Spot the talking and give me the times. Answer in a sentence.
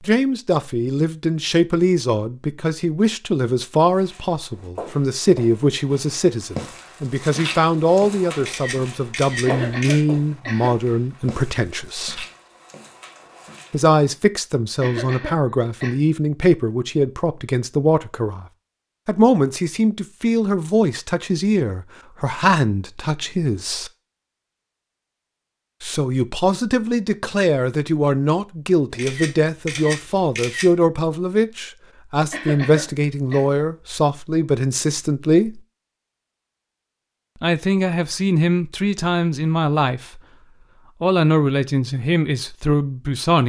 The talking can be heard from 0.0 to 12.2 s, from 13.7 to 18.4 s, from 19.1 to 23.9 s, from 25.8 to 35.6 s, from 37.4 to 40.2 s and from 41.0 to 43.4 s.